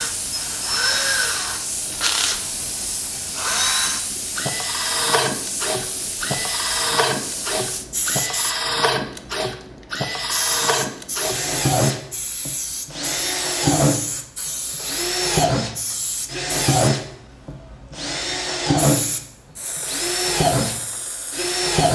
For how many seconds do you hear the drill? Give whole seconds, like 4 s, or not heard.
22 s.